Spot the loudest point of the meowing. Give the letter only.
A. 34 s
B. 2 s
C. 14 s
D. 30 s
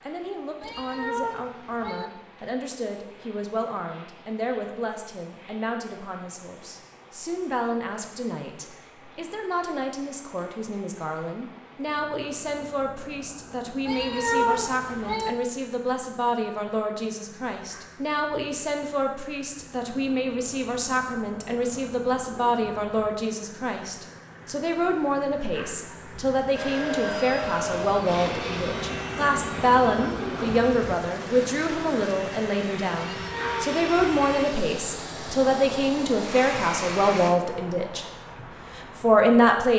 C.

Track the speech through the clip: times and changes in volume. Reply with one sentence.
The speech can be heard from 0.0 to 38.0 s, getting louder; and briefly from 38.8 to 39.7 s.